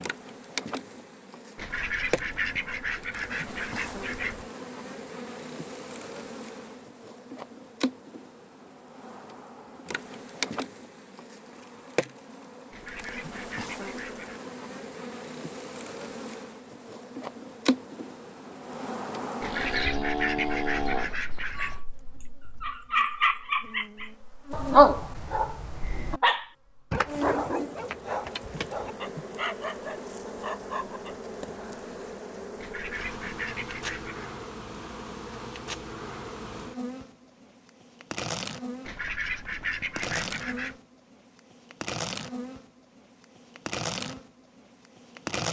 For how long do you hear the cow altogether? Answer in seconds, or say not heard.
2 s.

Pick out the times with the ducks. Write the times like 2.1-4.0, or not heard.
1.6-4.5, 12.7-14.4, 19.4-21.8, 32.5-34.3, 38.9-40.8.